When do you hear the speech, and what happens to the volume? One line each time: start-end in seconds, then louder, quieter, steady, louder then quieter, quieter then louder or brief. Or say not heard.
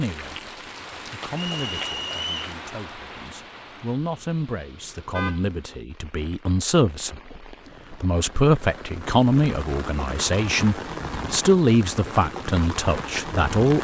0.0-13.8 louder.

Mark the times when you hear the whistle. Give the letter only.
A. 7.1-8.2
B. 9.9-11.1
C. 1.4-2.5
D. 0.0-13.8
C.